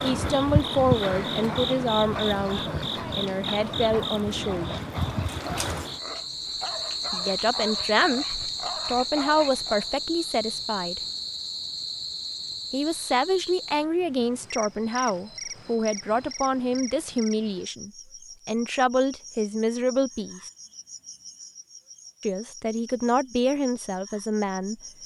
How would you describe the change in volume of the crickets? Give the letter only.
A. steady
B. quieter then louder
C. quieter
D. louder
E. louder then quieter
C.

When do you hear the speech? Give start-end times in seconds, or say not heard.
0.0-4.8, 7.1-11.0, 12.7-20.4, 22.2-24.8.